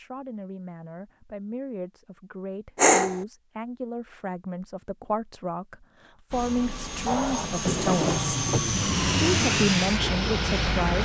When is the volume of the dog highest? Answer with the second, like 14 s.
3 s.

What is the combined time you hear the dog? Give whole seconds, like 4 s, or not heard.
2 s.